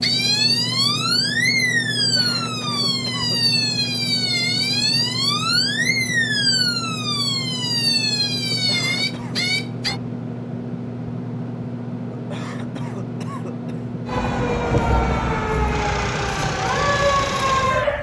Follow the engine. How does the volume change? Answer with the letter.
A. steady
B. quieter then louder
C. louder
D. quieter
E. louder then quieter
A.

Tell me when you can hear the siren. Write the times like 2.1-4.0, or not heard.
0.0-10.0, 14.1-17.9.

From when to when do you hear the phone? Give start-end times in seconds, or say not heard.
not heard.